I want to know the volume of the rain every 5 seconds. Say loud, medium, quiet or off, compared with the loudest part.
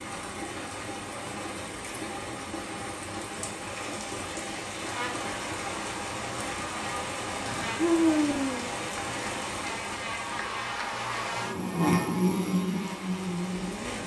loud, loud, medium.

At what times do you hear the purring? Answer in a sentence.
The purring can't be heard in this clip.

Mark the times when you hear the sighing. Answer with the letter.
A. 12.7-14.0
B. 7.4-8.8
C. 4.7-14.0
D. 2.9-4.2
B.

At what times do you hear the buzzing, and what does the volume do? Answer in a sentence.
You can hear the buzzing from 4.7 to 14.0 s, getting louder.